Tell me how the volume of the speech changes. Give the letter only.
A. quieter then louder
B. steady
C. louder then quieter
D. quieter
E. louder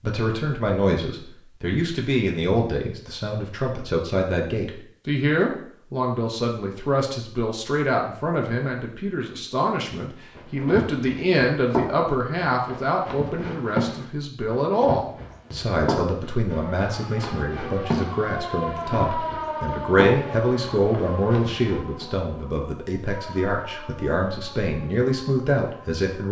B.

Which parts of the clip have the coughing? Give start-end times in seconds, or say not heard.
not heard.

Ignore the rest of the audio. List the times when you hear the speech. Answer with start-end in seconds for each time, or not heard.
0.0-26.2.